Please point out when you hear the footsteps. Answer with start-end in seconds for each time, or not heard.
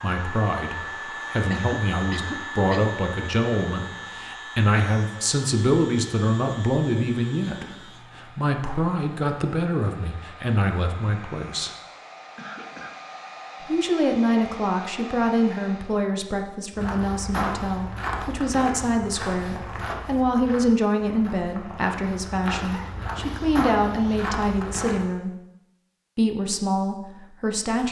16.7-25.1.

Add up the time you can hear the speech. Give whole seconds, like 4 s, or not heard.
25 s.